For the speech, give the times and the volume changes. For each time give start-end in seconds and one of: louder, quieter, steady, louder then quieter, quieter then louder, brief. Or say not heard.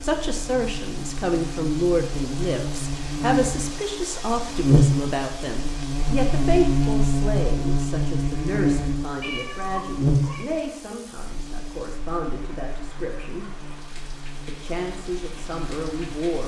0.0-13.4 quieter
14.4-16.4 brief.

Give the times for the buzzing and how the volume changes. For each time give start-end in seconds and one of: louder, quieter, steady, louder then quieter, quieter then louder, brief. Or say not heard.
0.0-16.2 louder then quieter.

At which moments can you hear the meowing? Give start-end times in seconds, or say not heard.
9.2-10.4.